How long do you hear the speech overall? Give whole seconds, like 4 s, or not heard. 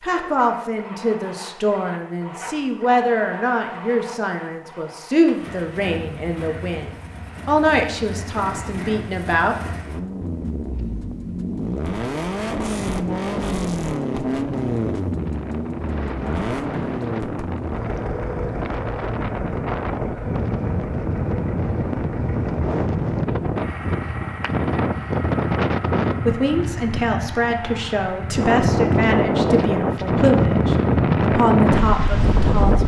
16 s.